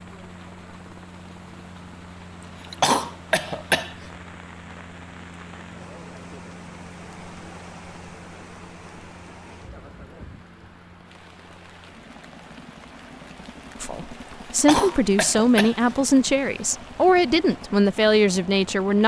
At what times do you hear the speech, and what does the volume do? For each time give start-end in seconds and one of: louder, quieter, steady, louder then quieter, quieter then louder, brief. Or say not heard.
13.8-19.0 steady.